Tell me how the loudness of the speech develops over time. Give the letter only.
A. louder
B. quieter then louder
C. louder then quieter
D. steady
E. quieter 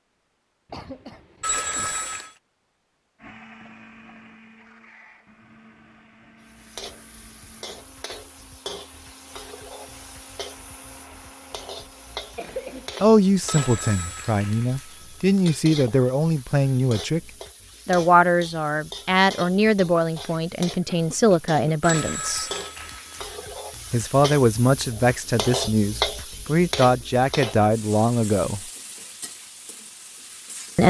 D.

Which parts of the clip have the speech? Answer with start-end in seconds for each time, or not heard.
13.0-17.2, 17.9-22.5, 23.9-28.6.